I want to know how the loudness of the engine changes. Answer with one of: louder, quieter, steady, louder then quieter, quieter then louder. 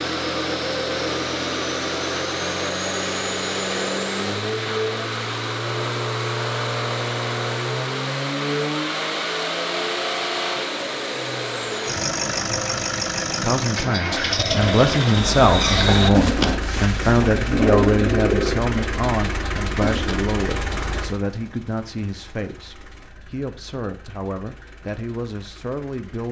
quieter.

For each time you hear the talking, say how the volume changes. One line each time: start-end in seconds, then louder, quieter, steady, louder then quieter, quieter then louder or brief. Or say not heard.
13.4-26.2 quieter.